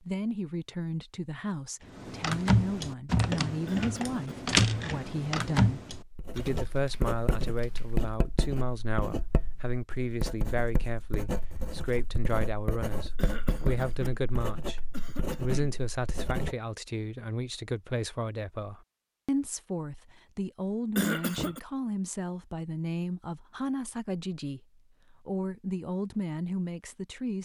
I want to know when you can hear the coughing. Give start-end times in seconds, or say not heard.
3.6-4.3, 13.2-14.2, 14.9-15.8, 20.9-21.6.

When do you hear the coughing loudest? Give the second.
21 s.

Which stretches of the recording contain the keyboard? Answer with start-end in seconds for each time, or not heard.
1.9-8.2.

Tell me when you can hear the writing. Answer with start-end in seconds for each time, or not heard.
6.0-16.6.